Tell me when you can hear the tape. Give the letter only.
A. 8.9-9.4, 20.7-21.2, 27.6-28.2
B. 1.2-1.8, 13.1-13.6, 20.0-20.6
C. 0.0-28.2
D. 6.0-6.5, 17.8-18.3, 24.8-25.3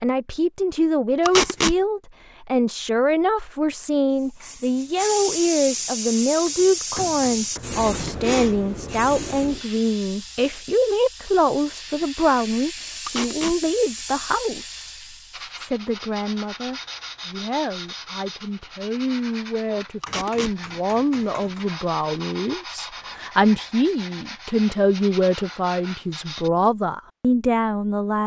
B.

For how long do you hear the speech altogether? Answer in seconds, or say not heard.
28 s.